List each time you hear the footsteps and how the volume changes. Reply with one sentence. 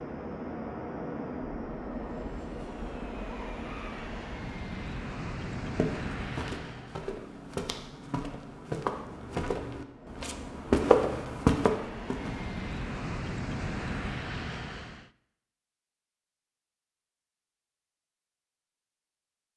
The footsteps can be heard from 5.6 to 12.5 s, getting louder.